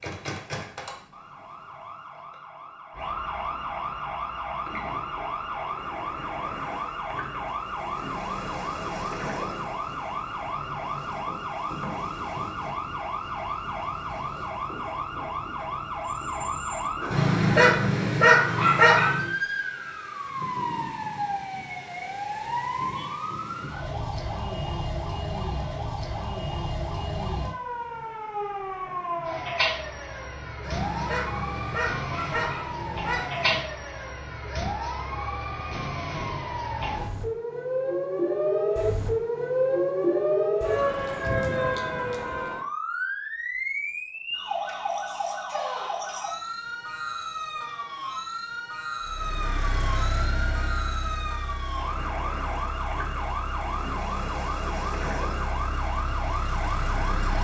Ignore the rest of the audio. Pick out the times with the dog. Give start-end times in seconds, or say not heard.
17.1-19.2, 30.6-33.6.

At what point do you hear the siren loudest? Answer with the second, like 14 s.
40 s.